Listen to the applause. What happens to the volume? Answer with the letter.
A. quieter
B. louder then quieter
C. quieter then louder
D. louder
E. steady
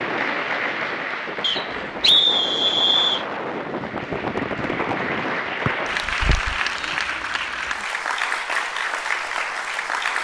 C.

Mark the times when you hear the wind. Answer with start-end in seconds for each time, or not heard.
0.0-6.6.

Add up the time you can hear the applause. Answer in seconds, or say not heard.
10 s.